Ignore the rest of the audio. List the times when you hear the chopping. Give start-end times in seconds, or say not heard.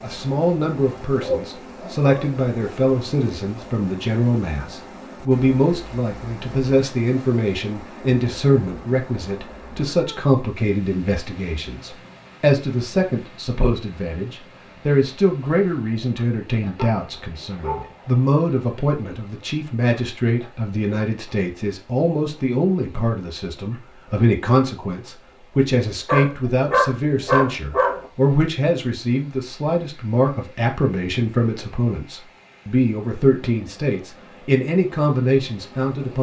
not heard.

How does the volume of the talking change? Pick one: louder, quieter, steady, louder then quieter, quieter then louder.
steady.